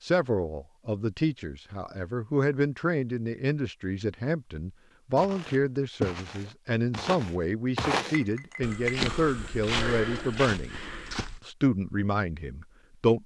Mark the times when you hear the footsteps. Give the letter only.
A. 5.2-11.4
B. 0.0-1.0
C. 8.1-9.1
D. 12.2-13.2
A.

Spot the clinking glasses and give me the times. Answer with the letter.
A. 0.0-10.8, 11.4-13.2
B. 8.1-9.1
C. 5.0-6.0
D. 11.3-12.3
B.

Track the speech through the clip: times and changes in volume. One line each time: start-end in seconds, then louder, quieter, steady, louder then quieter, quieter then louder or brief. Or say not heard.
0.0-10.8 steady
11.4-13.2 brief.